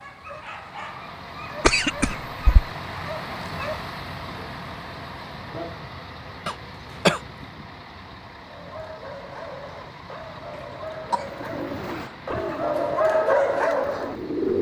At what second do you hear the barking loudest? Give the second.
13 s.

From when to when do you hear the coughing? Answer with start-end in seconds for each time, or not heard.
1.6-2.6, 6.5-7.2, 10.5-12.2.